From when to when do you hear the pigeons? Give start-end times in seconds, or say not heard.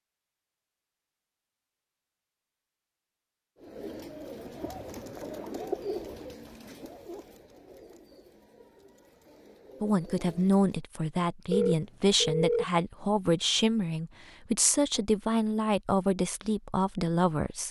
3.6-10.8.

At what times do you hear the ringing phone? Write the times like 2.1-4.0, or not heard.
11.5-12.7.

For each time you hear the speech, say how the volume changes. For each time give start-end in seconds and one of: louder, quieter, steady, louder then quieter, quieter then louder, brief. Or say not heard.
9.8-17.6 steady.